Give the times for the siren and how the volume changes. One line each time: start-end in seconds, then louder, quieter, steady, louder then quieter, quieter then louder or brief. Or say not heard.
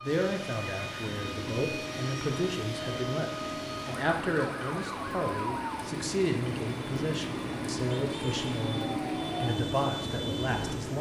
0.0-10.9 steady.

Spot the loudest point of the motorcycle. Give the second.
9 s.